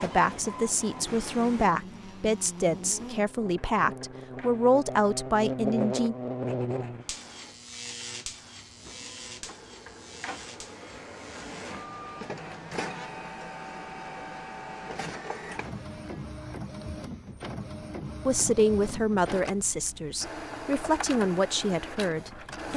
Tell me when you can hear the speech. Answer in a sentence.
The speech can be heard from 0.0 to 6.2 s and from 18.2 to 22.7 s.